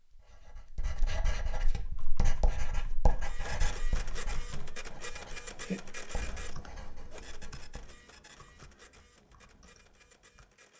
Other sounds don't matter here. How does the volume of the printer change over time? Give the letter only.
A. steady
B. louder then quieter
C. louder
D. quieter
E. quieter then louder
D.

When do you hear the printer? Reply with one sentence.
You can hear the printer from 3.1 to 10.7 s.